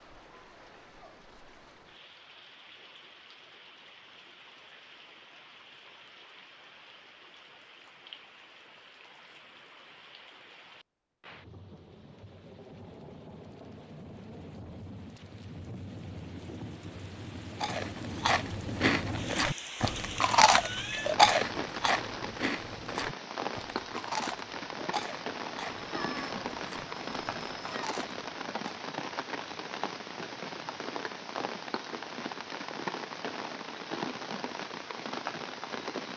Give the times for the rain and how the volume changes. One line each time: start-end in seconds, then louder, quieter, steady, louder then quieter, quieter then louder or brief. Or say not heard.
0.0-36.1 louder.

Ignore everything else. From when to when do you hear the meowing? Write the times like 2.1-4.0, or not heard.
25.6-27.9.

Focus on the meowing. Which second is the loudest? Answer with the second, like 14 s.
26 s.